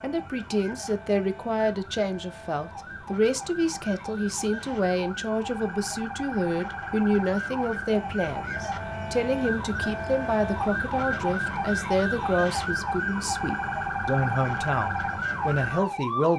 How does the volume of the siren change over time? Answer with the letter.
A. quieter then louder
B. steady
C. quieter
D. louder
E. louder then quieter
D.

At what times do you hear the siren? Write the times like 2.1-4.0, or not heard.
0.0-16.3.